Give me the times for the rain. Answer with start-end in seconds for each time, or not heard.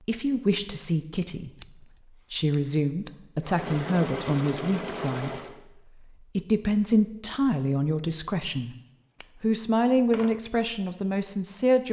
not heard.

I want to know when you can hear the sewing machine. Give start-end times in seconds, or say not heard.
3.4-5.5.